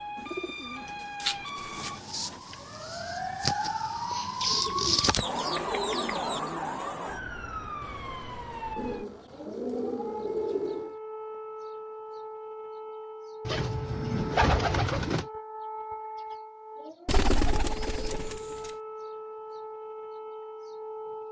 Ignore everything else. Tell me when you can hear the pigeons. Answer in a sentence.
You can hear the pigeons from 0.1 to 2.4 s, from 4.4 to 6.4 s, from 8.8 to 10.9 s, from 13.4 to 15.2 s and from 17.1 to 18.7 s.